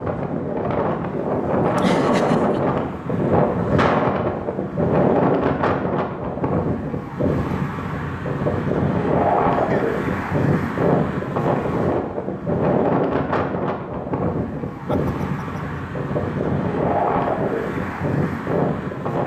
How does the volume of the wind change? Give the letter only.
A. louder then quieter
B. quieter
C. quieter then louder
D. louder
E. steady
E.